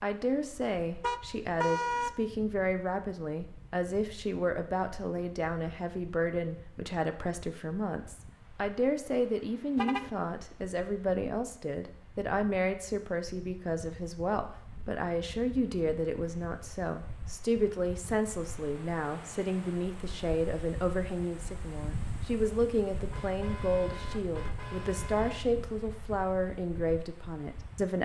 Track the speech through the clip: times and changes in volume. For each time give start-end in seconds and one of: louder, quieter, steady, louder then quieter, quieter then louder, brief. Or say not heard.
0.0-28.0 steady.